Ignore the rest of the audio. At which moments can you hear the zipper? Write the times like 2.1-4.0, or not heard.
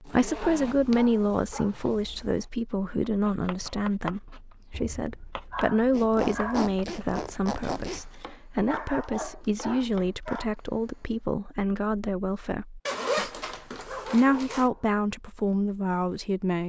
0.1-1.0, 5.9-8.0, 12.8-14.7.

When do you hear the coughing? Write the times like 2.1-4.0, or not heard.
not heard.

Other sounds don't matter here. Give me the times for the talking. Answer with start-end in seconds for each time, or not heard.
0.0-16.6.